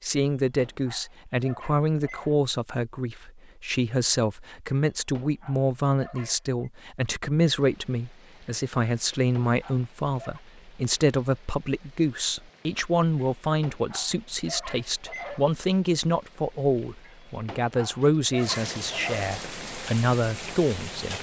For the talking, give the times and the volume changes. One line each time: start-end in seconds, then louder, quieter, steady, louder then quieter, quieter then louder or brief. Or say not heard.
0.0-21.1 steady.